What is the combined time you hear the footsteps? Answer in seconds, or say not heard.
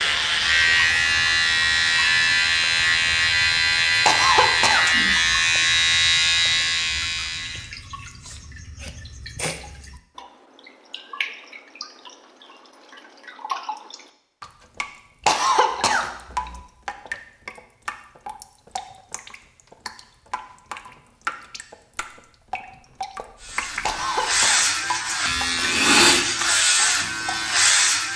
not heard.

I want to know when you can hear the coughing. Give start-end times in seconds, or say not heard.
4.0-5.3, 15.2-16.6, 23.8-24.7.